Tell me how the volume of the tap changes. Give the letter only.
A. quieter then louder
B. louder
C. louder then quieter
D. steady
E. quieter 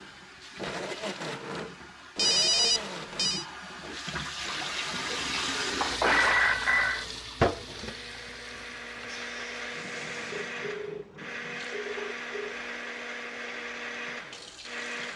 C.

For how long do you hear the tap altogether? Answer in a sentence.
The tap can be heard for 15 seconds in total.